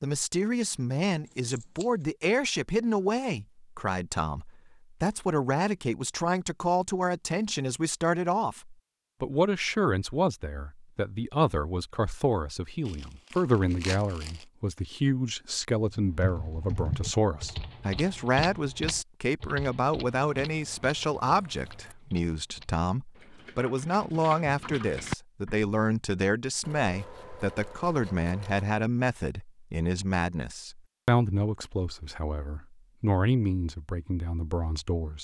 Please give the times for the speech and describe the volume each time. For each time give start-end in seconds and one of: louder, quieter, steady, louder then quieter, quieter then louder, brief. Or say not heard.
0.0-35.2 steady.